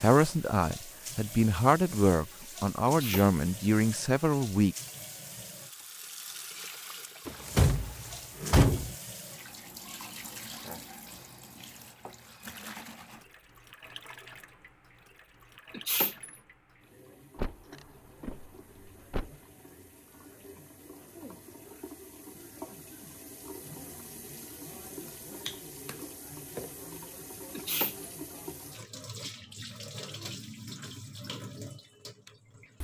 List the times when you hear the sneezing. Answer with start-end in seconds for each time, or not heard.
2.9-3.3, 15.8-16.4, 27.6-28.1.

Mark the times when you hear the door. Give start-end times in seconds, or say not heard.
7.2-8.9, 17.4-19.4.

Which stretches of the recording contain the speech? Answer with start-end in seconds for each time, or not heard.
0.0-4.8.